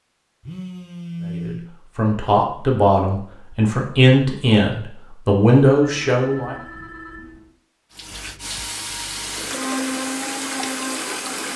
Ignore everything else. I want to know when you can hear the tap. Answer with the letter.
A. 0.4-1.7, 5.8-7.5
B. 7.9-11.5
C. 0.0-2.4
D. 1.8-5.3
B.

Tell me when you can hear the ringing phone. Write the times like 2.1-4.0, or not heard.
0.4-1.7, 5.8-7.5.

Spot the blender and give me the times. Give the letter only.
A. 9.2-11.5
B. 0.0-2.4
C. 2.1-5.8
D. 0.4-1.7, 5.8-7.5
A.